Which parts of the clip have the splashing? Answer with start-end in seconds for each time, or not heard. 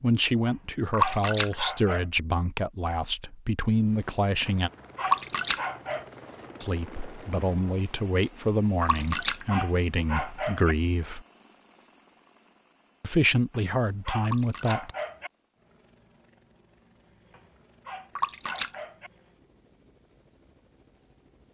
0.9-1.6, 5.0-5.7, 8.8-9.4, 14.2-14.8, 18.1-18.8.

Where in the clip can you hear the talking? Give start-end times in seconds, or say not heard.
0.0-4.7, 6.6-11.2, 13.0-14.9.